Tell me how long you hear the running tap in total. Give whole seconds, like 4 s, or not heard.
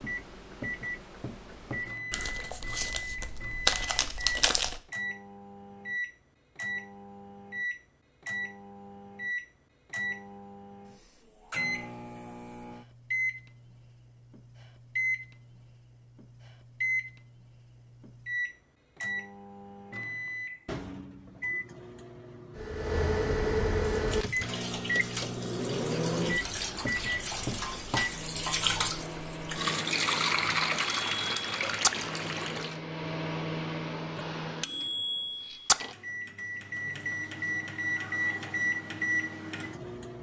9 s.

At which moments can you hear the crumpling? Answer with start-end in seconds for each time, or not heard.
2.1-4.8.